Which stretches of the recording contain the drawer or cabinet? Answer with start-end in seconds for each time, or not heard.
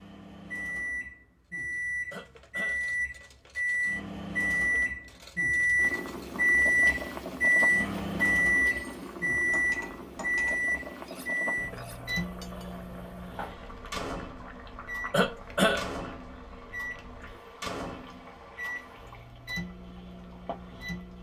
not heard.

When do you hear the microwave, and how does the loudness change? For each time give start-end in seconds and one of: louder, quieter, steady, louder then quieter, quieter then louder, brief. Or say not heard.
0.0-21.1 louder then quieter.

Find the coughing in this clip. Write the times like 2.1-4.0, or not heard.
2.1-2.9, 15.1-15.8.